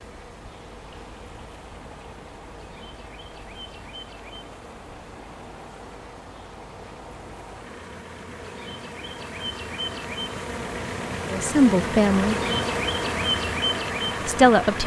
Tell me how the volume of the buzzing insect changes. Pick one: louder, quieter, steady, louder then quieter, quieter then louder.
louder.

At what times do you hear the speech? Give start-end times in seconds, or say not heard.
11.3-12.3, 14.2-14.8.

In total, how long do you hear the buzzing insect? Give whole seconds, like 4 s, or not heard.
15 s.